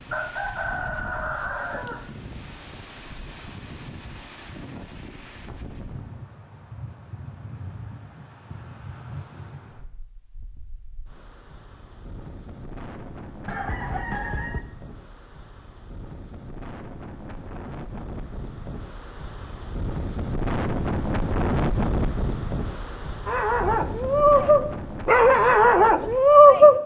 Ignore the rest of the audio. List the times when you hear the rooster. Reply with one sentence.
You can hear the rooster from 0.1 to 2.0 s and from 13.4 to 14.6 s.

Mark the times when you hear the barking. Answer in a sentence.
You can hear the barking from 23.2 to 26.8 s.